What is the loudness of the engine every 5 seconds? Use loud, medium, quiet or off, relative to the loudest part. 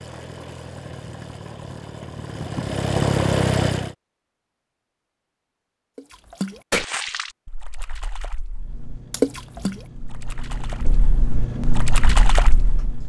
loud, quiet, medium.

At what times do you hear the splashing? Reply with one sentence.
You can hear the splashing from 6.0 to 13.0 s.